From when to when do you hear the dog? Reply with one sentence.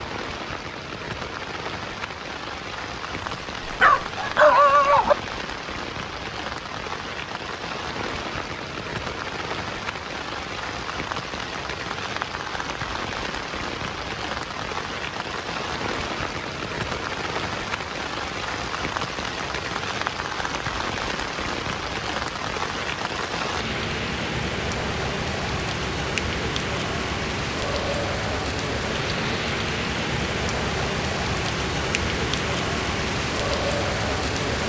The dog can be heard from 3.1 to 5.2 s.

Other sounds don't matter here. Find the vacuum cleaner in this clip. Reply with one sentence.
You can't hear the vacuum cleaner here.